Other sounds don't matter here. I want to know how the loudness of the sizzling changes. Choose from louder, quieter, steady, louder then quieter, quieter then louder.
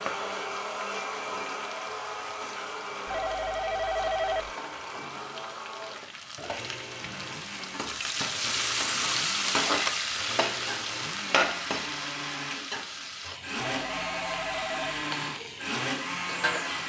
louder then quieter.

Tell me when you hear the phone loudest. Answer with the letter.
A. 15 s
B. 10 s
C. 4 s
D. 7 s
C.